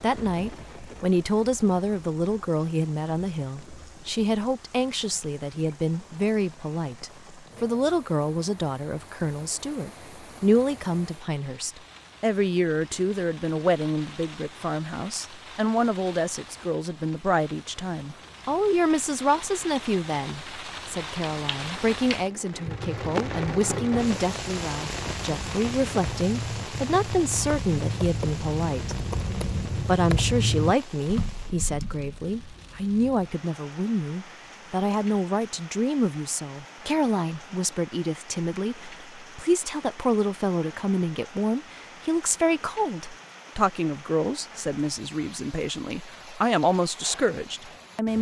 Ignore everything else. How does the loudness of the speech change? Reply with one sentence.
The loudness of the speech stays about the same.